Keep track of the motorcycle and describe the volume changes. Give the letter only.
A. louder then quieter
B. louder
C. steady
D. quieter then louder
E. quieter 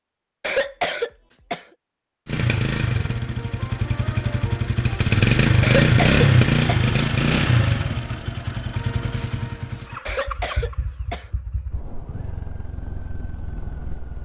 A.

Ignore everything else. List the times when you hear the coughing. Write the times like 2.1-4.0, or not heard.
0.4-1.6, 5.6-7.0, 10.1-11.3.